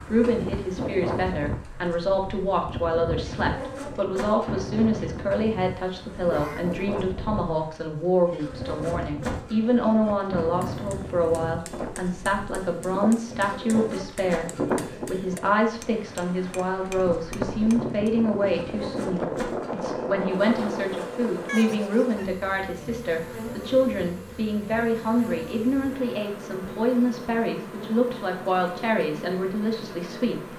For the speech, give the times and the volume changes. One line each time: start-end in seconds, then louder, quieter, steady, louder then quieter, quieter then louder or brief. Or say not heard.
0.1-30.5 steady.